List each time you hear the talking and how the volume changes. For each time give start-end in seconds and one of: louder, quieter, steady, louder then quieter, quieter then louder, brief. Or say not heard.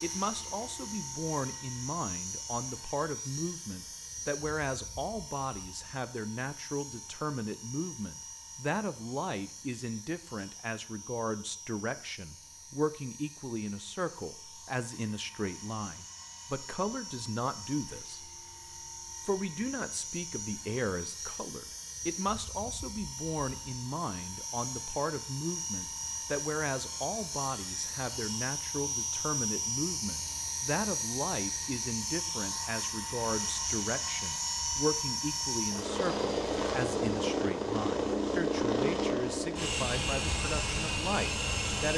0.0-18.3 steady
19.2-41.9 steady.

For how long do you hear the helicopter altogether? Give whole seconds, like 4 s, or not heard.
42 s.